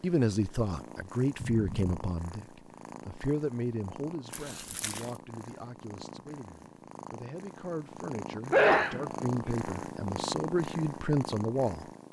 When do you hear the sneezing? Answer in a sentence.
You can hear the sneezing from 1.4 to 1.9 s and from 8.5 to 9.5 s.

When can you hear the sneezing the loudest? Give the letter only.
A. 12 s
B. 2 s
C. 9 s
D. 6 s
C.